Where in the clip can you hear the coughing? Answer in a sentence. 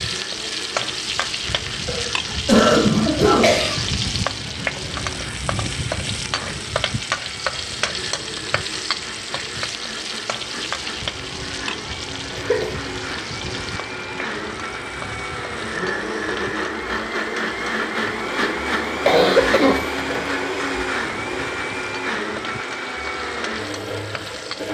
The coughing can be heard from 1.9 to 3.8 s, from 12.3 to 12.8 s and from 19.1 to 20.2 s.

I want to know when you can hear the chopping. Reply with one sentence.
You can't hear the chopping here.